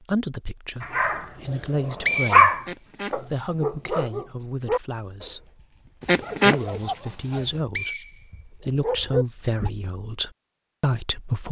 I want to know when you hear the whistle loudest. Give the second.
2 s.